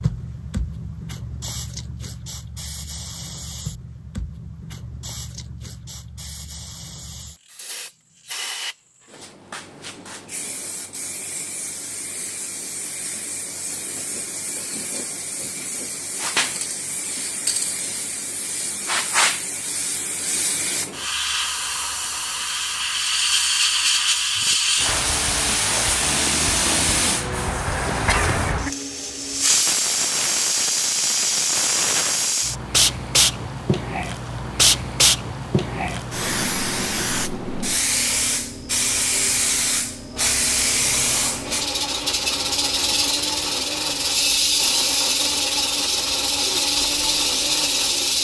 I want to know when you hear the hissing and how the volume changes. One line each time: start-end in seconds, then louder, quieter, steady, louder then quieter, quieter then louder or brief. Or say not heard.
0.0-48.1 louder.